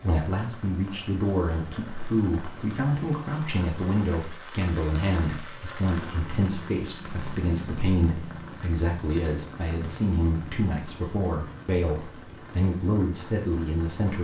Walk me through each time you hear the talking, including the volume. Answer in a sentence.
The talking can be heard from 0.0 to 14.1 s, at a steady volume.